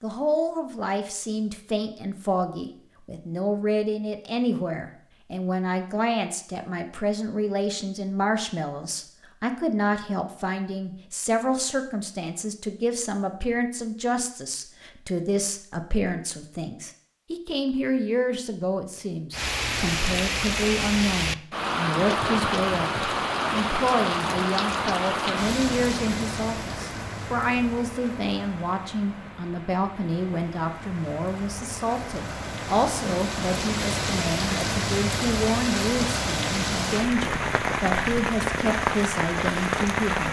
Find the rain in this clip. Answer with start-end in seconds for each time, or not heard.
19.3-40.2.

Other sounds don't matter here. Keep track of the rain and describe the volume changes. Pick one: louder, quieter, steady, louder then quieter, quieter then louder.
quieter then louder.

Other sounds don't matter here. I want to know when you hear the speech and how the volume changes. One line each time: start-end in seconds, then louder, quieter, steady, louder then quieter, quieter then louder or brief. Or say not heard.
0.0-40.2 steady.